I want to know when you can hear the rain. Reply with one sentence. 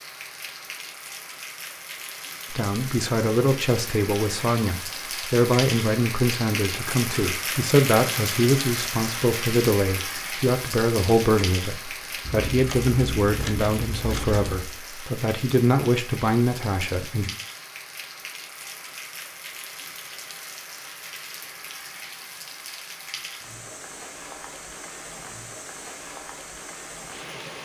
The rain can be heard from 0.0 to 27.6 s.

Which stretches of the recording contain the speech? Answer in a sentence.
You can hear the speech from 2.5 to 17.3 s.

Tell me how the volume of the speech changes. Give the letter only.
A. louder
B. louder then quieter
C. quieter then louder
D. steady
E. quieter
D.